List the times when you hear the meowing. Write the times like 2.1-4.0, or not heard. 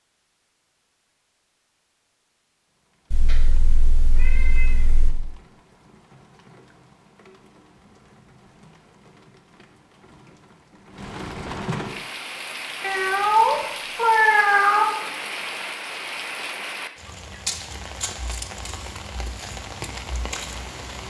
3.1-5.1, 12.8-14.8.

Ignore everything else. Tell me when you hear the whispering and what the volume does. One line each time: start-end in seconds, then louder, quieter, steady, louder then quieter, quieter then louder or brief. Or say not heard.
not heard.